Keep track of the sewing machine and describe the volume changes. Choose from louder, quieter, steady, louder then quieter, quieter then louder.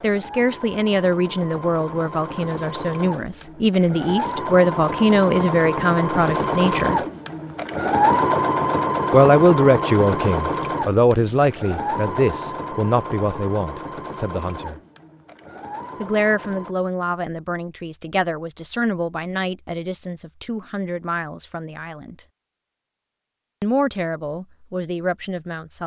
louder then quieter.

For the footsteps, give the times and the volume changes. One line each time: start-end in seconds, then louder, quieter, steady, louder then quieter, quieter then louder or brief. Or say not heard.
not heard.